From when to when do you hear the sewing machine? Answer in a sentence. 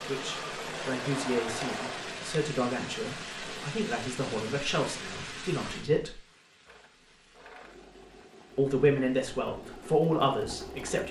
The sewing machine can be heard from 0.0 to 3.5 s and from 6.7 to 11.0 s.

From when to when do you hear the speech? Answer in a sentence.
You can hear the speech from 0.0 to 6.2 s and from 8.6 to 11.0 s.